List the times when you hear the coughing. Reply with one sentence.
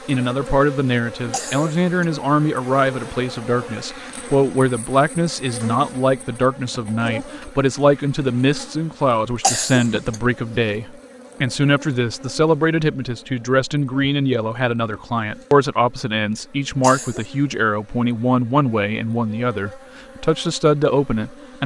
The coughing can be heard from 1.3 to 2.0 s, from 9.4 to 10.2 s and from 16.8 to 17.3 s.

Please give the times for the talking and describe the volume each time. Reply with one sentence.
You can hear the talking from 0.1 to 21.6 s, at a steady volume.